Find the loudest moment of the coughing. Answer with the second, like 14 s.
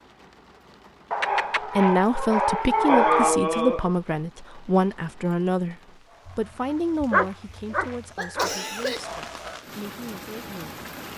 3 s.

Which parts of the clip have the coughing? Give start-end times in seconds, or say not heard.
2.9-4.0, 7.7-9.1.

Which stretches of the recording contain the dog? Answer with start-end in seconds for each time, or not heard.
1.1-3.4, 6.2-8.6.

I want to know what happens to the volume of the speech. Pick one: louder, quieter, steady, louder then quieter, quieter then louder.
quieter.